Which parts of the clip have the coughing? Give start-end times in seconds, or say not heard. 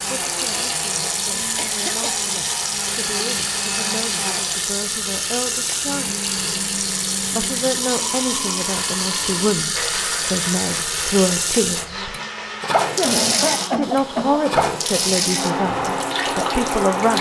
1.6-2.2, 12.9-14.4.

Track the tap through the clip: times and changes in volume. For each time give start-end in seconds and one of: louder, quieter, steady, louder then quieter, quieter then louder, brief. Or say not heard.
0.0-17.1 steady.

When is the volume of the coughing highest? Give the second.
13 s.